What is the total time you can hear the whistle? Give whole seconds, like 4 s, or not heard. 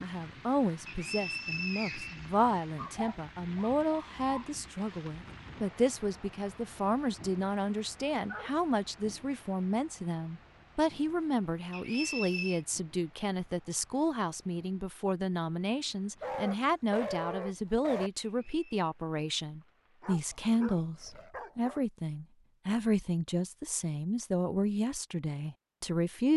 3 s.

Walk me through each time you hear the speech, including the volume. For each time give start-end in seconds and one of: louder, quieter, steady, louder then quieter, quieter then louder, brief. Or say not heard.
0.0-26.3 steady.